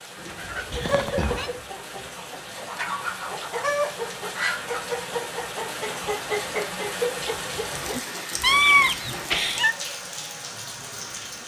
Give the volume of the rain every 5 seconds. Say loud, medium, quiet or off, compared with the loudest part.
medium, loud, loud.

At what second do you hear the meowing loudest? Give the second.
9 s.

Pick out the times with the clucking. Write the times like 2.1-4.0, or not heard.
0.1-9.3.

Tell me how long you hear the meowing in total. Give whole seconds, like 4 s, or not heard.
2 s.